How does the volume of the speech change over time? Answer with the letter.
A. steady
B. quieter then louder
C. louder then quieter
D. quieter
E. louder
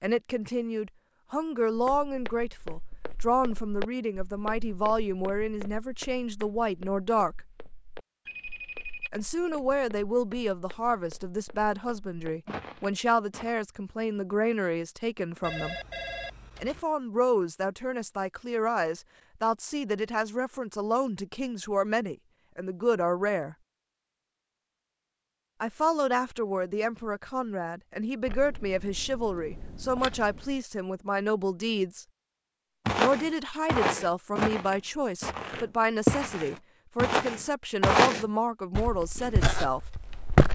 A.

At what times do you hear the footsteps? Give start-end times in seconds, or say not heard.
1.8-13.6, 32.9-40.4.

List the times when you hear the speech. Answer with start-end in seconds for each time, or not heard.
0.0-7.4, 9.1-15.8, 16.6-23.6, 25.6-32.0, 33.0-39.8.